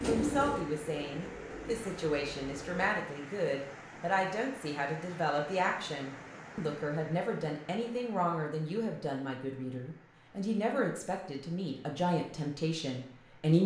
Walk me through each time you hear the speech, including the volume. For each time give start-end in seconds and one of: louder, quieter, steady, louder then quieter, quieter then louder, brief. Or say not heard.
0.1-13.6 steady.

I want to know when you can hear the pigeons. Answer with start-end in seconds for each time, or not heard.
0.0-3.0.